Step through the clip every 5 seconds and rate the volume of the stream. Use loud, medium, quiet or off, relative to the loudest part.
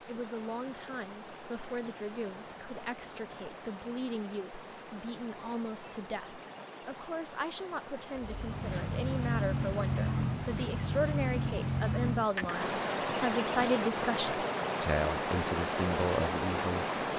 quiet, quiet, loud, loud.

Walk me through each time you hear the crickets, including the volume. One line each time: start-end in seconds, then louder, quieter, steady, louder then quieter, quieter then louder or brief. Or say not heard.
8.2-16.9 quieter.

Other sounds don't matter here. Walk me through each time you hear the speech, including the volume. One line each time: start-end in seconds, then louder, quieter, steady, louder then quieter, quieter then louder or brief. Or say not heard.
0.0-16.9 louder.